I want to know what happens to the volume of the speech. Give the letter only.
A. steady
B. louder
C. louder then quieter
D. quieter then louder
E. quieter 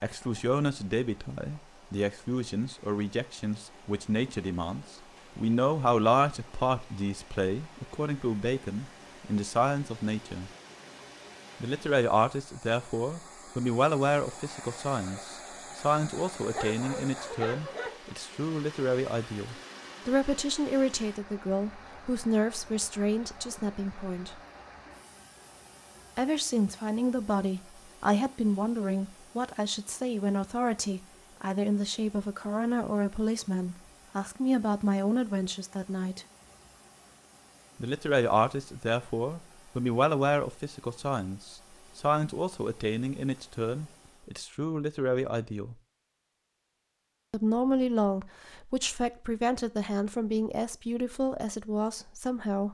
A.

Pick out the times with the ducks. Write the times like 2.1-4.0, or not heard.
not heard.